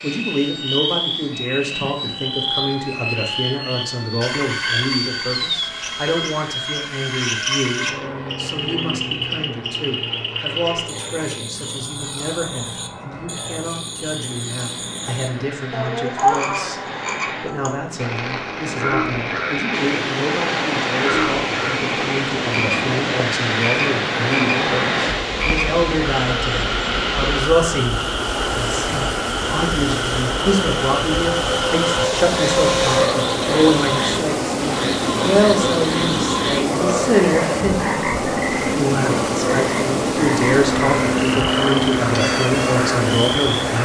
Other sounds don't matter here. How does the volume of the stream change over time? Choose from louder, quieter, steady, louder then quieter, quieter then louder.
steady.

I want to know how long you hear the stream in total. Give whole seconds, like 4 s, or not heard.
24 s.